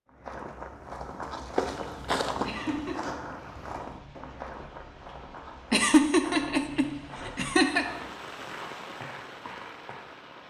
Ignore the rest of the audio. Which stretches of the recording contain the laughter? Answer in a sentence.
The laughter can be heard from 2.5 to 3.0 s and from 5.7 to 7.8 s.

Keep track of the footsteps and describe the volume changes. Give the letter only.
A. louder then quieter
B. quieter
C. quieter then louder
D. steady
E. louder
B.